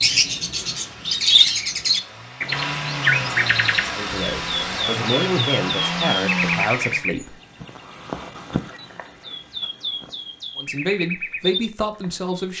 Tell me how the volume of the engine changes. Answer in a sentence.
The loudness of the engine goes up.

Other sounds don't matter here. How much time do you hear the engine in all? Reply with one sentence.
You can hear the engine for 7 seconds altogether.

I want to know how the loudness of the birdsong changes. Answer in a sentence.
The volume of the birdsong goes down.